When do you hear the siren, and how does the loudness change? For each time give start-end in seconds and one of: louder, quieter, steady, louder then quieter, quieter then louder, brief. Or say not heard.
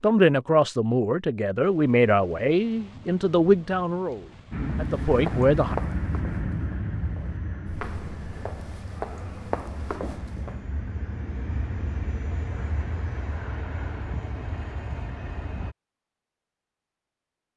not heard.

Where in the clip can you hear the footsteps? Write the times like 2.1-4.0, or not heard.
4.9-10.6.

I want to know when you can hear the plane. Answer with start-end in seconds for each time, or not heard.
4.5-15.8.